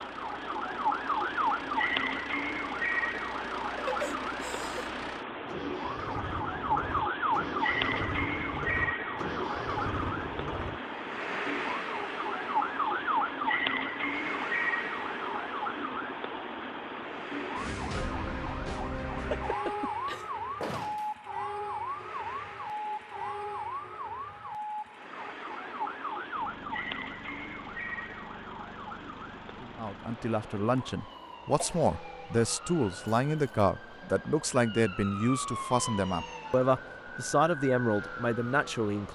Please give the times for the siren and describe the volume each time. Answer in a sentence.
You can hear the siren from 0.0 to 39.1 s, getting quieter.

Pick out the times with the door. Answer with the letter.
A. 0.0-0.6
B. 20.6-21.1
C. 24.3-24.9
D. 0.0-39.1
B.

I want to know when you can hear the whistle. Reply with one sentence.
You can't hear the whistle here.